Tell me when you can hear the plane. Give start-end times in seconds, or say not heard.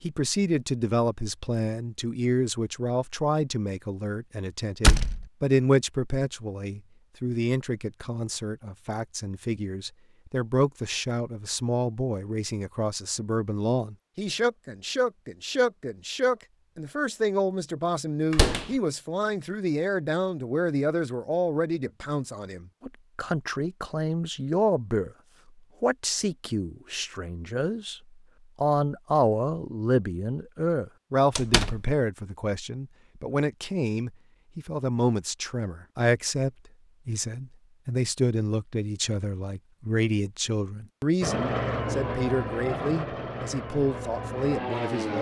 41.2-45.1.